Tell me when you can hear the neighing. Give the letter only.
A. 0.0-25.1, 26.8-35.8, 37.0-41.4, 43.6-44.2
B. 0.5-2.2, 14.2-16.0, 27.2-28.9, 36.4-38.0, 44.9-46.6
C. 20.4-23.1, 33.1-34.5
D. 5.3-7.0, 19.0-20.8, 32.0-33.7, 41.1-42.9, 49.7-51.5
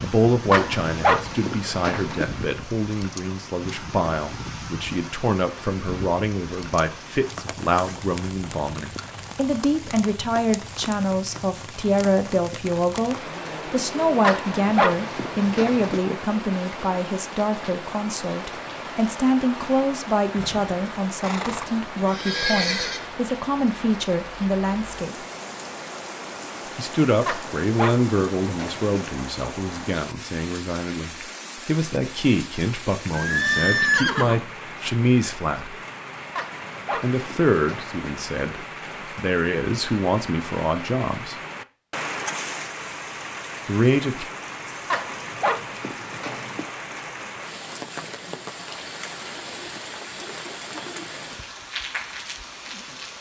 C.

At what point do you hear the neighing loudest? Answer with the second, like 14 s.
34 s.